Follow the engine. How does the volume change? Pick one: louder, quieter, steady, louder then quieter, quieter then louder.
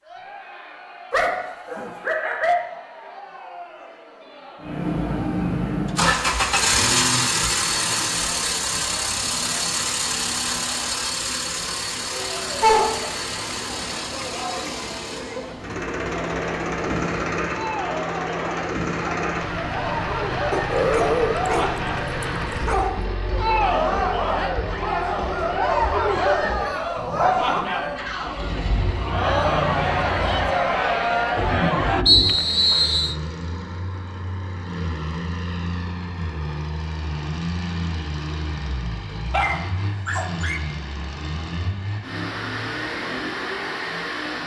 quieter.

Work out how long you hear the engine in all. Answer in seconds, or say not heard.
40 s.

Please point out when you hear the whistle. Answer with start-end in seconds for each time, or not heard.
32.0-33.1.